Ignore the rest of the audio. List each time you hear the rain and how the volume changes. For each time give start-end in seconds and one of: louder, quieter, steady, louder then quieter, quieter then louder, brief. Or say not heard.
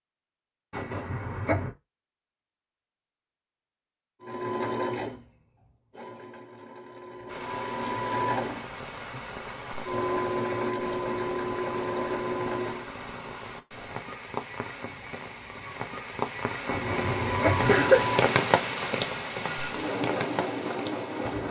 7.2-21.4 louder.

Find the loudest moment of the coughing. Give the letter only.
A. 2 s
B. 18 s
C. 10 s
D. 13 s
B.